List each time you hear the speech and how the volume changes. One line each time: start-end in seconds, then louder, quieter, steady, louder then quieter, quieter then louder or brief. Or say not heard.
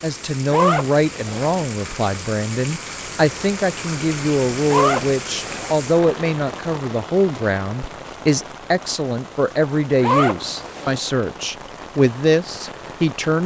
0.0-13.4 steady.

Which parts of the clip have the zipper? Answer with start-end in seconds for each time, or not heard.
0.5-1.6, 4.7-5.8, 10.0-11.0.